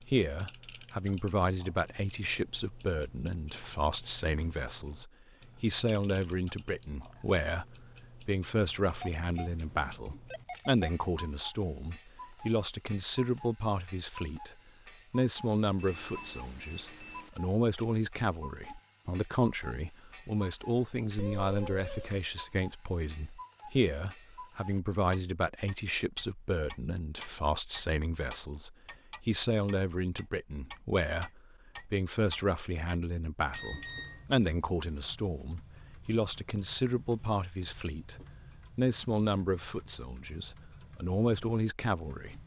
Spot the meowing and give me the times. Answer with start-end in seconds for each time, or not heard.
21.1-22.2.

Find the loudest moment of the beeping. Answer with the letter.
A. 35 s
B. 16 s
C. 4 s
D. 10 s
B.